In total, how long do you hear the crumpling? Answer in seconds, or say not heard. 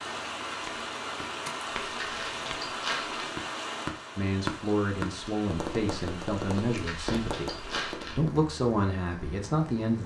3 s.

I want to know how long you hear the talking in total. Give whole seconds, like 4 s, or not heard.
6 s.